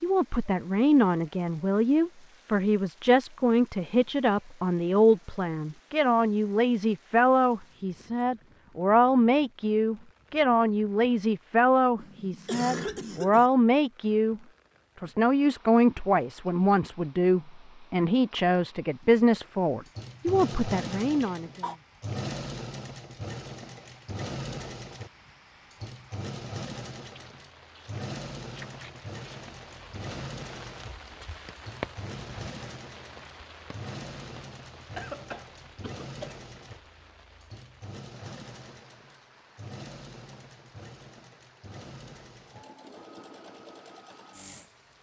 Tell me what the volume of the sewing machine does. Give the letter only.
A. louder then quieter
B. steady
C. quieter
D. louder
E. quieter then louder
C.